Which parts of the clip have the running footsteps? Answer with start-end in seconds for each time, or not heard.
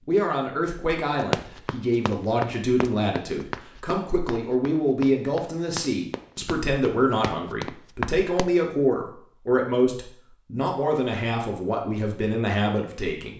1.2-8.5.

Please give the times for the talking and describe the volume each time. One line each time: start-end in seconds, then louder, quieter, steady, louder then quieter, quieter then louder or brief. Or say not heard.
0.1-13.3 steady.